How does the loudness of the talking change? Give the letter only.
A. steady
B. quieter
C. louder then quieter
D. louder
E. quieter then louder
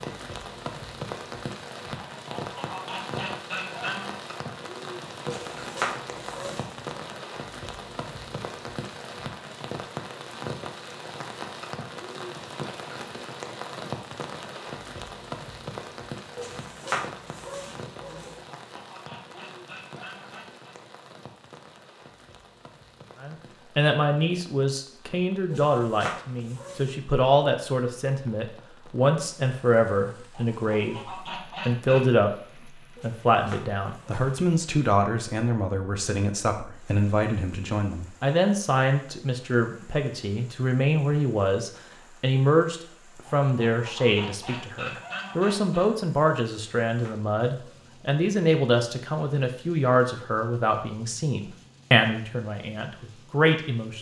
A.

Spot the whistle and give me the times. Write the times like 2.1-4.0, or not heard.
not heard.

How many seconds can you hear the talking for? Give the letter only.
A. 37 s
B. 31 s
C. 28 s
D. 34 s
B.